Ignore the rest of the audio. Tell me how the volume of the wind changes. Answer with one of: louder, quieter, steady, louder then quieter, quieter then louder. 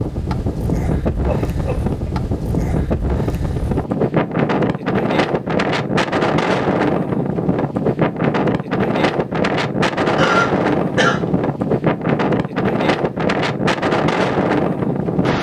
steady.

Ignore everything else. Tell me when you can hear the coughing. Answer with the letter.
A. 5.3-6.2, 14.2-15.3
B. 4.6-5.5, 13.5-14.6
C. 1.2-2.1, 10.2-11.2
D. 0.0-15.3
C.